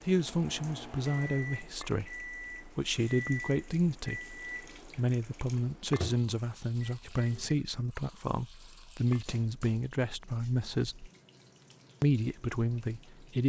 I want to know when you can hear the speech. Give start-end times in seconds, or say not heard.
0.1-11.1, 12.0-13.4.